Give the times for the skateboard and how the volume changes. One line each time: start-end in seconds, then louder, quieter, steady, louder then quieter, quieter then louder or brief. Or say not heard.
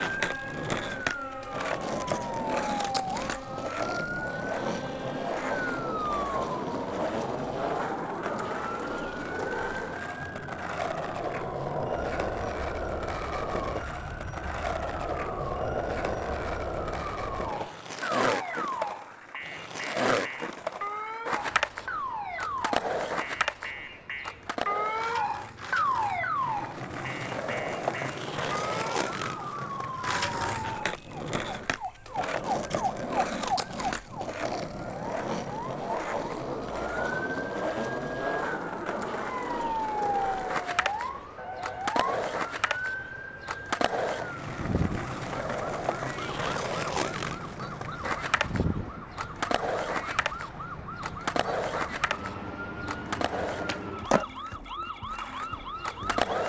0.0-56.4 steady.